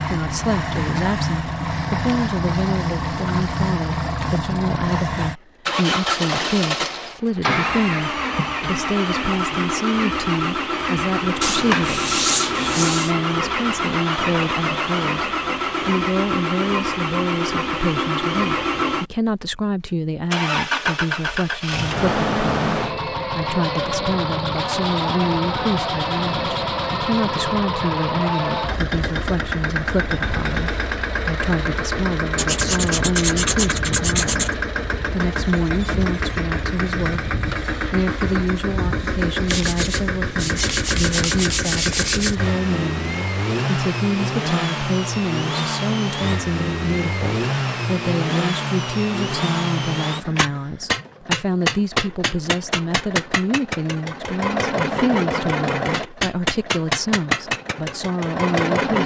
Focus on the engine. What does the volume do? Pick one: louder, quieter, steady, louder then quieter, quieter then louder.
steady.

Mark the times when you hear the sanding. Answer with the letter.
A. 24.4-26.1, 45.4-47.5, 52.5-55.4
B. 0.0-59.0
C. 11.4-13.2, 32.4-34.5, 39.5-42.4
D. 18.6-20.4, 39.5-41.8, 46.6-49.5
C.